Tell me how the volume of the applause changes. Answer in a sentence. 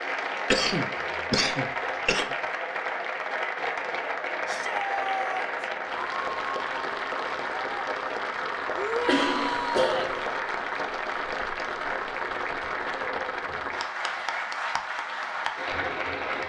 The loudness of the applause stays about the same.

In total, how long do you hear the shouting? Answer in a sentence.
You can hear the shouting for 3 seconds altogether.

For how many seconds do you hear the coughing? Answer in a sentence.
The coughing can be heard for 3 seconds in total.